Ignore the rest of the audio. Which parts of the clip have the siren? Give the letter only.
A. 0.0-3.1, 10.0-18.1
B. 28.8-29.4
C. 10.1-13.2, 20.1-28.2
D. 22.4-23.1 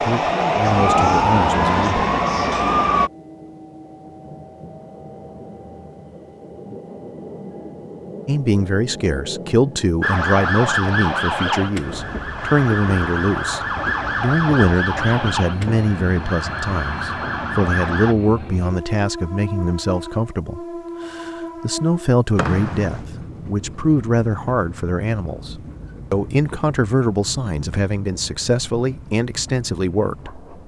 A.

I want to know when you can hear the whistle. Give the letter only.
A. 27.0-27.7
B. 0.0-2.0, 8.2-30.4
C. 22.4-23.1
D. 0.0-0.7
C.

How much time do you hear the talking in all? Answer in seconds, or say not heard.
24 s.